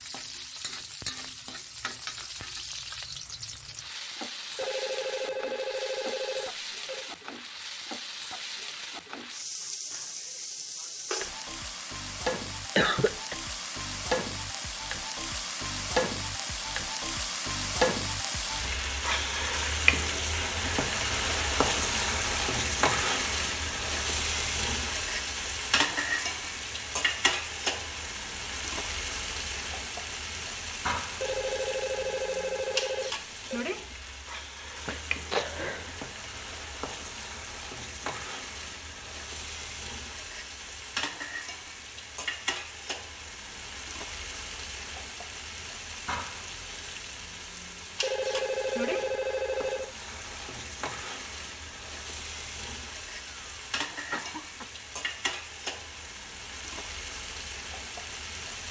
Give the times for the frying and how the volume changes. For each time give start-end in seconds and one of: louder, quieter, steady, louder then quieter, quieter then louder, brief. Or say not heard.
0.0-58.6 louder then quieter.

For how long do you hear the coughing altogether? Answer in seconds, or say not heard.
3 s.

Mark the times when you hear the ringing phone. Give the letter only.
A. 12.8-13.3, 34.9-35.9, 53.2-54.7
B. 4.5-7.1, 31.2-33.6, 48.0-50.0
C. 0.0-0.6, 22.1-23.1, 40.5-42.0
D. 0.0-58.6
B.